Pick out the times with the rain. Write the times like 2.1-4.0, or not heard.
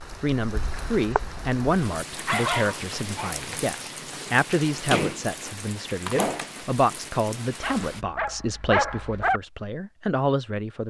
0.0-8.1.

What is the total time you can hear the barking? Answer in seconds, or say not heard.
3 s.